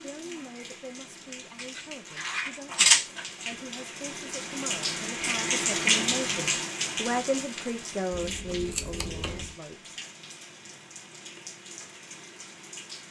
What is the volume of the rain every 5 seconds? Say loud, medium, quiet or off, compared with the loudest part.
medium, loud, quiet.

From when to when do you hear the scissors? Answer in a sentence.
You can hear the scissors from 1.6 to 3.2 s and from 8.1 to 9.6 s.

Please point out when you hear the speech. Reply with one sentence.
The speech can be heard from 0.0 to 9.9 s.